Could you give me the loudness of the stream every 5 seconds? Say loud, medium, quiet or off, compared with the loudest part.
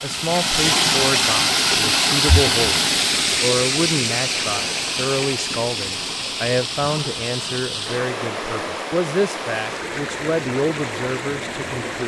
loud, medium, medium.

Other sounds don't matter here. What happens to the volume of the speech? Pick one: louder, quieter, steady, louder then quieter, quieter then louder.
steady.